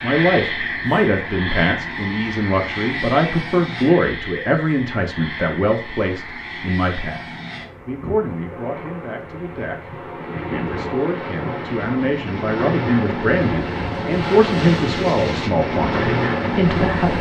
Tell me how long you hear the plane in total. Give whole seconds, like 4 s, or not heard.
17 s.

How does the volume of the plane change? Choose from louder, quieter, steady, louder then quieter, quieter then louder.
quieter then louder.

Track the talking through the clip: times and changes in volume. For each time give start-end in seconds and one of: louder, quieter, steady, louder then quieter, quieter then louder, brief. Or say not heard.
0.0-17.1 quieter then louder.